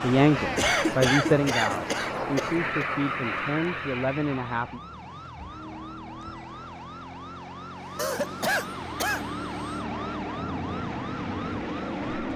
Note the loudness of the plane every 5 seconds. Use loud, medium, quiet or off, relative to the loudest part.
loud, medium, loud.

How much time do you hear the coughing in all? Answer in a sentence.
The coughing can be heard for 4 seconds in total.